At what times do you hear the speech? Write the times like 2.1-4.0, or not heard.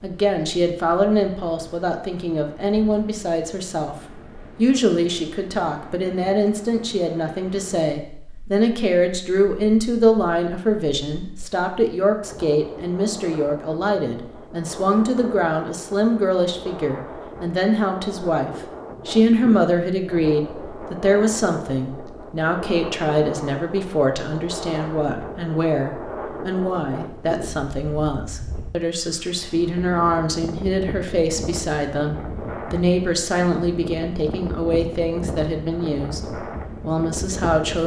0.0-4.0, 4.5-37.8.